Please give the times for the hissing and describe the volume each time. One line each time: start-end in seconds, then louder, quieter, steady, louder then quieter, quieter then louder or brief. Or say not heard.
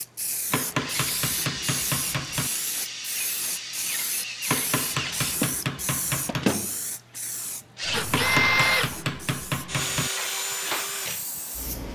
0.0-11.9 quieter.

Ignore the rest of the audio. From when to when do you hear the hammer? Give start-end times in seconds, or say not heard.
0.5-2.5, 4.5-6.5, 8.1-10.1.